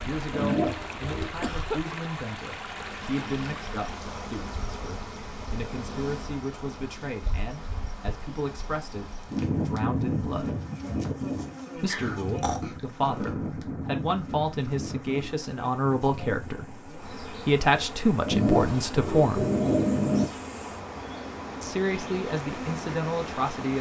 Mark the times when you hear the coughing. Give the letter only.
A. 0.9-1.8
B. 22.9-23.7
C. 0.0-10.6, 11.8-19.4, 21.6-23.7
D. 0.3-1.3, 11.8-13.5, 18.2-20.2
A.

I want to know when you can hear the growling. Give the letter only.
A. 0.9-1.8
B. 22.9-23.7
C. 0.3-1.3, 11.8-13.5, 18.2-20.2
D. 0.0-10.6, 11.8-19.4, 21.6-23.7
C.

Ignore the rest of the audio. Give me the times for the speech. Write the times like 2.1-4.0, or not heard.
0.0-10.6, 11.8-19.4, 21.6-23.7.